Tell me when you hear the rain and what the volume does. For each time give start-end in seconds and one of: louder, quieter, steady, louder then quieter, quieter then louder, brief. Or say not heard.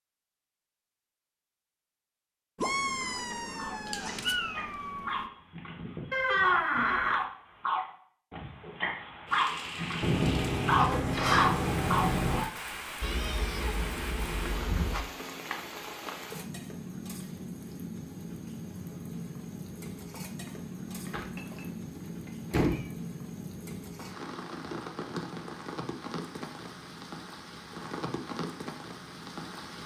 9.2-29.8 steady.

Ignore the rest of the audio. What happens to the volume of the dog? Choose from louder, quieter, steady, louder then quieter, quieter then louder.
louder.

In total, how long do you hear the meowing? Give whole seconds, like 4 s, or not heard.
7 s.